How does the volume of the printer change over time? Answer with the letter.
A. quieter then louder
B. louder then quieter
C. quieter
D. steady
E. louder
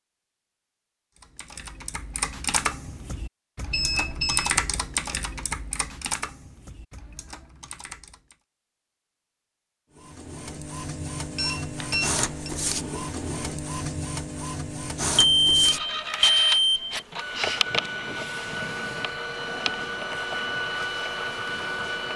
D.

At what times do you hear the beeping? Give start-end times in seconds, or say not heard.
3.7-4.5, 11.3-12.5, 15.2-16.9.